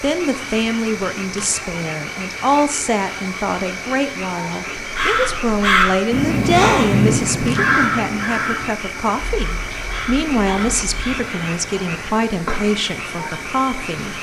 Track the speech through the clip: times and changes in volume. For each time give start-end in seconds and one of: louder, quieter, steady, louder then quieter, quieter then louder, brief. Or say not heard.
0.0-14.1 steady.